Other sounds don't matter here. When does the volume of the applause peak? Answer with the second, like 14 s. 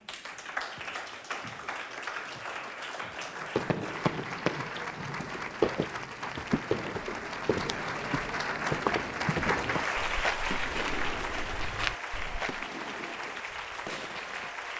10 s.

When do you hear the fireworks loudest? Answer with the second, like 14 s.
6 s.